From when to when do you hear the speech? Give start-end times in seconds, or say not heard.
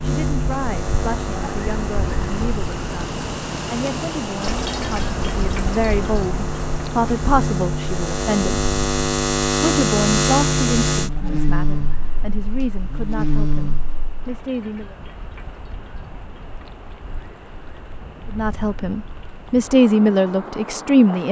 0.0-8.6, 9.6-14.9, 18.3-21.2.